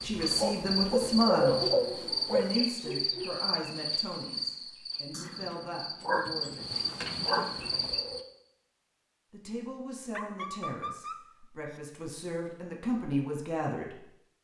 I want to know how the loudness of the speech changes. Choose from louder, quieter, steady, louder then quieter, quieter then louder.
quieter then louder.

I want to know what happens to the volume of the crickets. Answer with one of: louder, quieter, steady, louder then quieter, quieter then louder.
quieter then louder.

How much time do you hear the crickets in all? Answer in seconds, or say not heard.
8 s.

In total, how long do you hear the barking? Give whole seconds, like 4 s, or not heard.
6 s.